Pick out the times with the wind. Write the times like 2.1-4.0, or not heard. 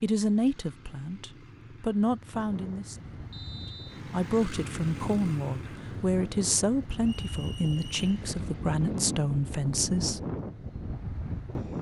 2.3-11.7.